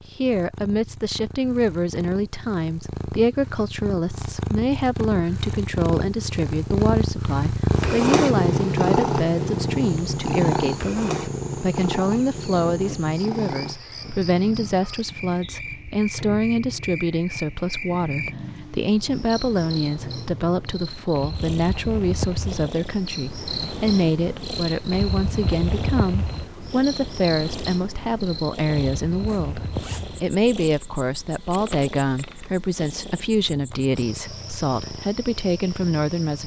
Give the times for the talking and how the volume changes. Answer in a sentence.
You can hear the talking from 0.1 to 36.4 s, at a steady volume.